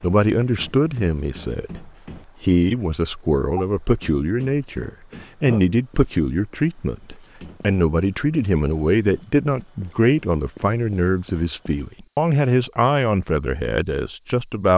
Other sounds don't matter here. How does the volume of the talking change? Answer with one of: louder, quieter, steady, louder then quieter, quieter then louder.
steady.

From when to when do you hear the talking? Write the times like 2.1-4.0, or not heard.
0.0-14.7.